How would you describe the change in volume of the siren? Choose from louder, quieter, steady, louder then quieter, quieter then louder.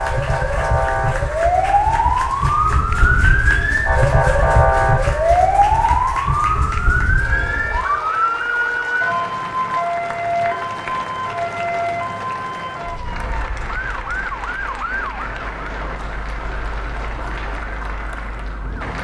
quieter.